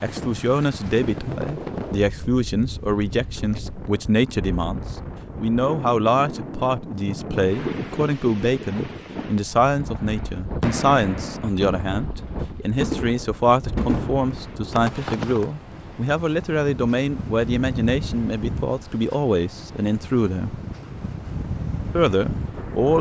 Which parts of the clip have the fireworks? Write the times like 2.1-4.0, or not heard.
10.0-15.5.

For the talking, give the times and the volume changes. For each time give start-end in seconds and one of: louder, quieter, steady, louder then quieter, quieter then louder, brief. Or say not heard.
0.0-20.6 steady
21.9-22.9 brief.